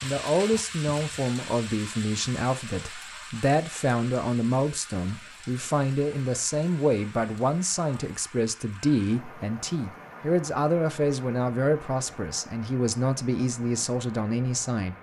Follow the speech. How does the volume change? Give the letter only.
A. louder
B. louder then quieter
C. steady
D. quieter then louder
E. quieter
C.